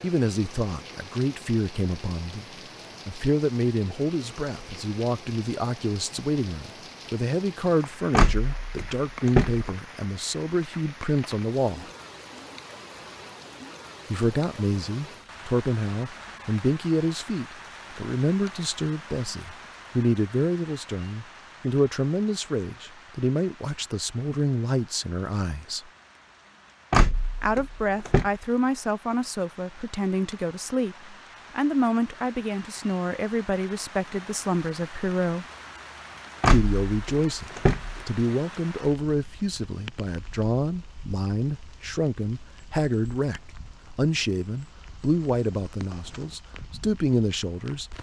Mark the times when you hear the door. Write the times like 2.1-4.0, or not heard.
8.1-9.7, 26.9-28.3, 36.4-38.0.